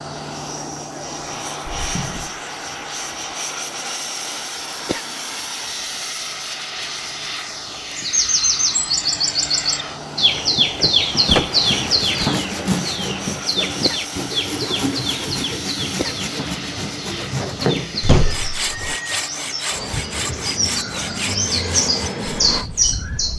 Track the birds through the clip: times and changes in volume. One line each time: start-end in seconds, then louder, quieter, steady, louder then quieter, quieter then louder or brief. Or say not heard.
8.0-23.3 quieter then louder.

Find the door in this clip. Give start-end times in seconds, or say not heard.
1.6-2.3, 10.3-12.2, 17.2-18.9.